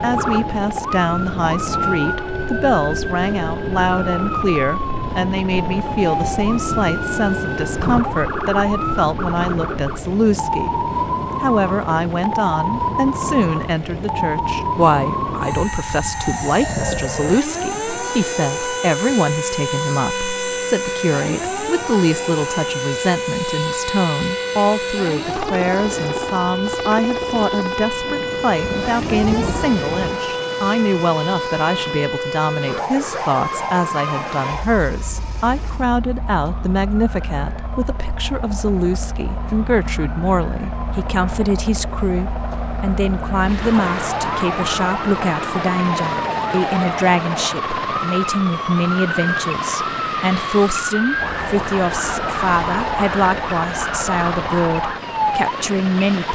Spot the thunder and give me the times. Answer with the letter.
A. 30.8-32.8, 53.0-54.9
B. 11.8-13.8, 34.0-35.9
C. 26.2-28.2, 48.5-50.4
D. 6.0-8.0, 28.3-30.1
D.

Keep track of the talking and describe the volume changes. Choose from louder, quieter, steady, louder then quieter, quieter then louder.
steady.